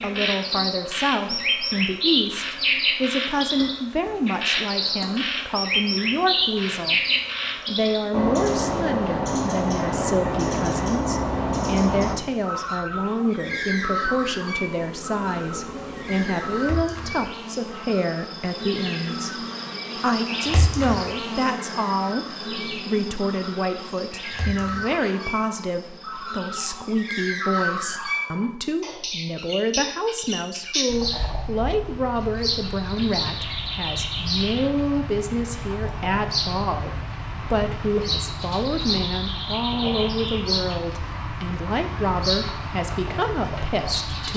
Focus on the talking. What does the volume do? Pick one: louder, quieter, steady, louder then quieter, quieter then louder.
steady.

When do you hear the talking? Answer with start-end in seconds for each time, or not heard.
0.0-7.0, 7.7-44.3.